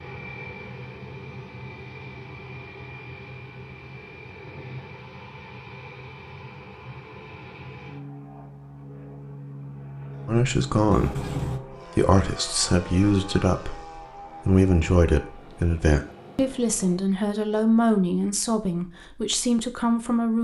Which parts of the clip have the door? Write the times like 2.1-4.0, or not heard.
10.9-11.6.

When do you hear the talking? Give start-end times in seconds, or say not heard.
10.2-11.3, 11.9-20.4.